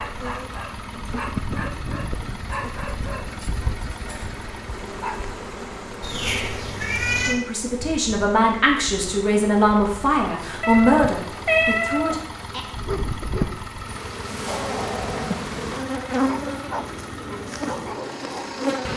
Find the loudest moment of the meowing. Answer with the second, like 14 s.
12 s.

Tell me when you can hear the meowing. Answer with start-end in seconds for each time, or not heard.
6.0-7.4, 10.6-12.6.